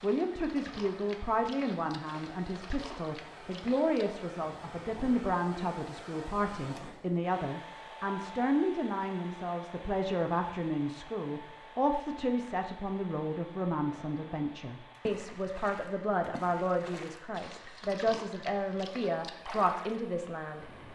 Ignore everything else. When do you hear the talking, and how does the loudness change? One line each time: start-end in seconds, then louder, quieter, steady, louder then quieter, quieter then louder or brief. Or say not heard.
0.0-20.6 steady.